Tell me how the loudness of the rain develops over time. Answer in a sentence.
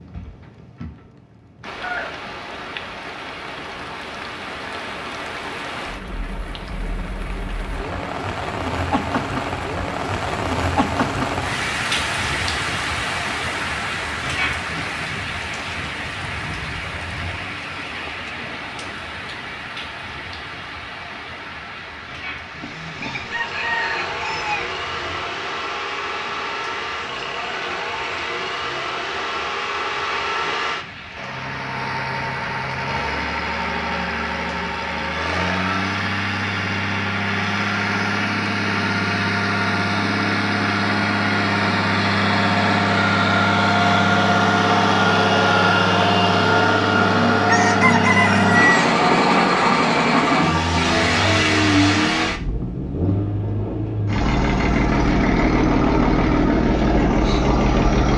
The loudness of the rain goes up, then down.